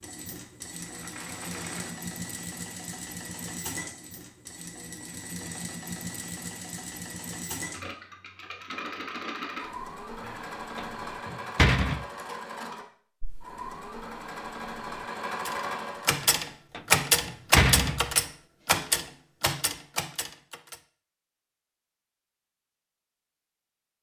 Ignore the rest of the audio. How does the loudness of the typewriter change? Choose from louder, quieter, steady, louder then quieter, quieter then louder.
louder then quieter.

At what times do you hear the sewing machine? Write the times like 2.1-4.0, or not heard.
0.0-16.2.